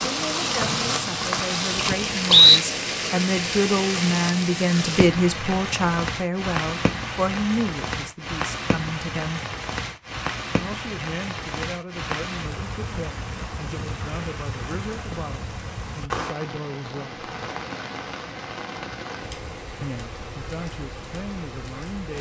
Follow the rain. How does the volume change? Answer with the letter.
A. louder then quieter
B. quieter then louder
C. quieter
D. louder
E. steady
C.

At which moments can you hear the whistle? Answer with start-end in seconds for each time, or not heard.
0.6-2.5.